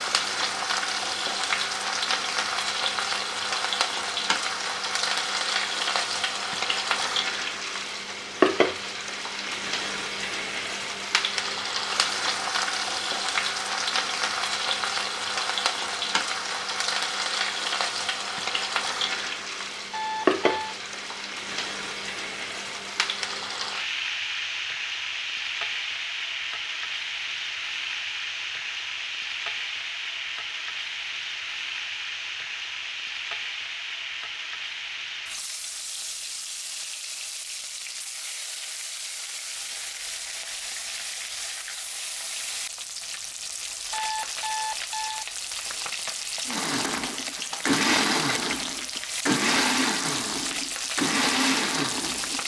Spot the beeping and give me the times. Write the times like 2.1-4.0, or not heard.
19.9-20.8, 43.9-45.2.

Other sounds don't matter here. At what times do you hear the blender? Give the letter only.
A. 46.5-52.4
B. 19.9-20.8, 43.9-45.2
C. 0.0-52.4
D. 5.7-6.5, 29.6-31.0
A.